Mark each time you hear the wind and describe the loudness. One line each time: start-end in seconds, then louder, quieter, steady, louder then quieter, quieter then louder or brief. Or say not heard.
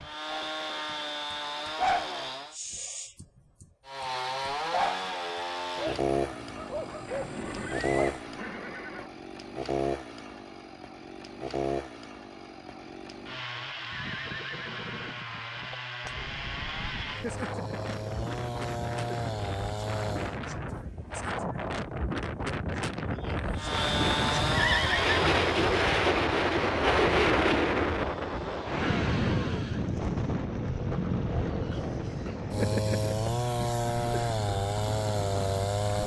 16.0-36.0 louder then quieter.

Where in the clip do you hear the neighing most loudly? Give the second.
25 s.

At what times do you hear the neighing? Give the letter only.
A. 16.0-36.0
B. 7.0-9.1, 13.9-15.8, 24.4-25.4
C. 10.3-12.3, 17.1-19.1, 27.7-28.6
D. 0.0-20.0
B.